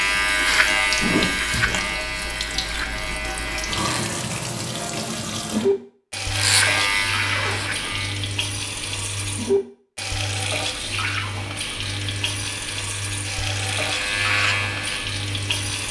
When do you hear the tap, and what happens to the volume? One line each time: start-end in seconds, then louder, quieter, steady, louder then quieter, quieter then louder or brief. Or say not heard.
0.0-15.8 steady.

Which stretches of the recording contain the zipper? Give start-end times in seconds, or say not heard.
7.2-8.0.